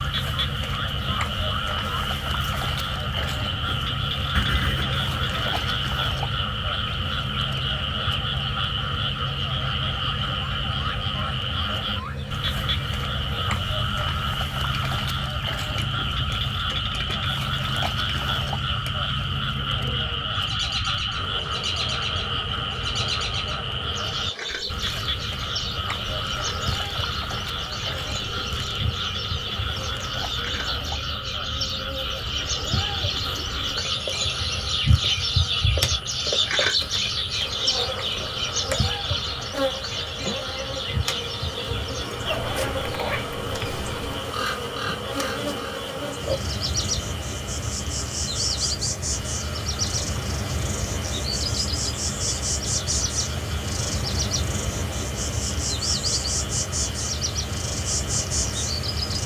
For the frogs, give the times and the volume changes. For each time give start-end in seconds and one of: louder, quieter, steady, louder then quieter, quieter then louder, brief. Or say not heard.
0.0-59.2 quieter.